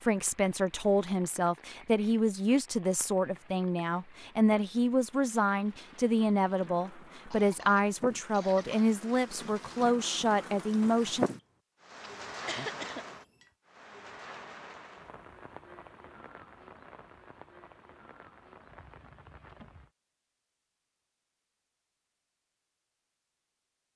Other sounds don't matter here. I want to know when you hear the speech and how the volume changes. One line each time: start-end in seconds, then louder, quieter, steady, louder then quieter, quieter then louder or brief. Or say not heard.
0.0-11.3 steady.